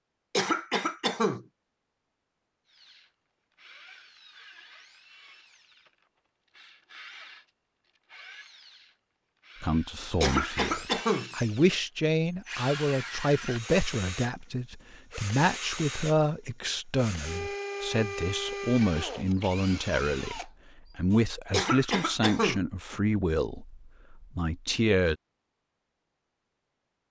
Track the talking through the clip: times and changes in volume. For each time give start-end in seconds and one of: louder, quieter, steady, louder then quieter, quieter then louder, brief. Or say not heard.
9.6-25.1 steady.